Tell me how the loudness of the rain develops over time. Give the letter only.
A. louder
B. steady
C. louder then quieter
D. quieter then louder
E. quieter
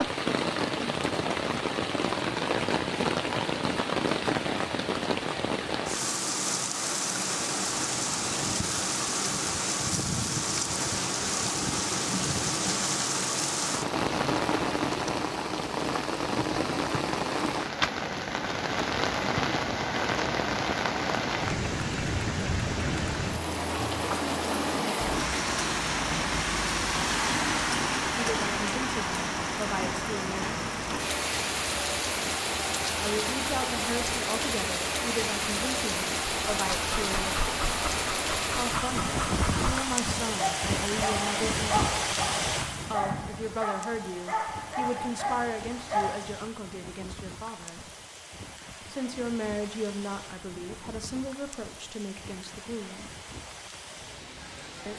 E.